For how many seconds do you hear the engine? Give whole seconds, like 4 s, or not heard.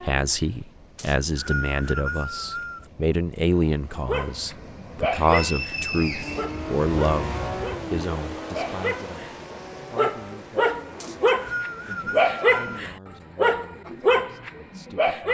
5 s.